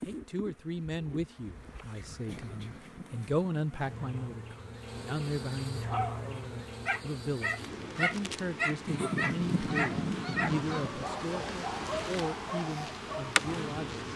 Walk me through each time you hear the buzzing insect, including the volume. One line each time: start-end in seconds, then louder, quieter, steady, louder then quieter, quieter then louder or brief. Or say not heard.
0.0-14.1 louder.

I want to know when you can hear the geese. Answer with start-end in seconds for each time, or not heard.
2.3-4.2, 8.8-10.9.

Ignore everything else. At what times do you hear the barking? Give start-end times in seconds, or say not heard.
5.8-13.7.